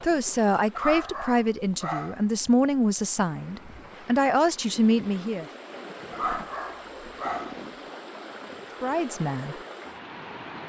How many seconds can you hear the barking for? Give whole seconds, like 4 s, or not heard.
3 s.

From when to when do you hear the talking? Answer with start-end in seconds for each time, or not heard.
0.0-5.5, 8.8-9.6.